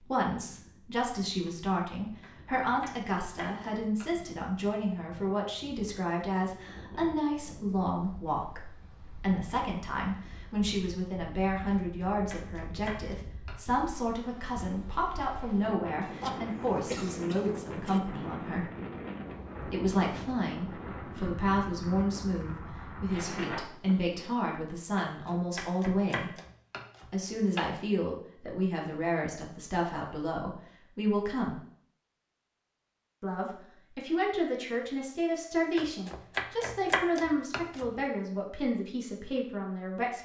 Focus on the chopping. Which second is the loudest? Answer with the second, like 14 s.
37 s.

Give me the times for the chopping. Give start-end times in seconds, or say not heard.
2.2-4.3, 11.7-13.6, 25.1-27.6, 35.8-37.9.